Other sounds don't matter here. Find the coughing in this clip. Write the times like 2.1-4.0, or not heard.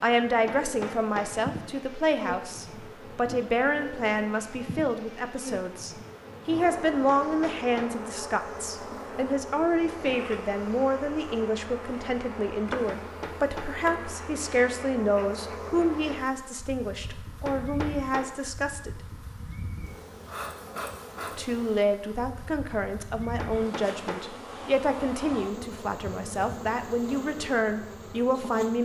not heard.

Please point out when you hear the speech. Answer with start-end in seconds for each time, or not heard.
0.0-18.9, 21.4-28.7.